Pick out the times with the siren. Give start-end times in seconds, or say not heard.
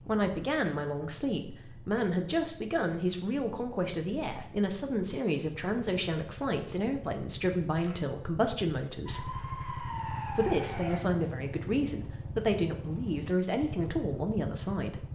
9.1-11.0.